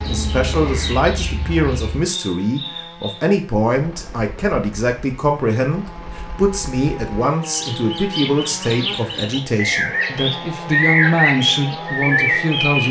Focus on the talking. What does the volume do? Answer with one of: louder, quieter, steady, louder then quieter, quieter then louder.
steady.